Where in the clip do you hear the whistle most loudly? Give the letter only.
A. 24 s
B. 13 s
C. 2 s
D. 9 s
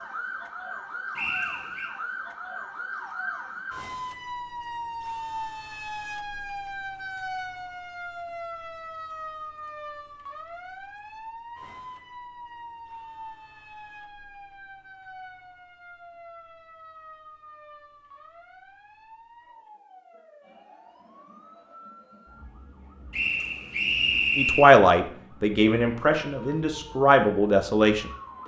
A.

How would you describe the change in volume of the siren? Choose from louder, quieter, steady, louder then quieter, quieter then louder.
quieter.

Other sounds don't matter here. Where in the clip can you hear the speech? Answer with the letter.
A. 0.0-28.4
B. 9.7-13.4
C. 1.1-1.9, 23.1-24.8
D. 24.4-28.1
D.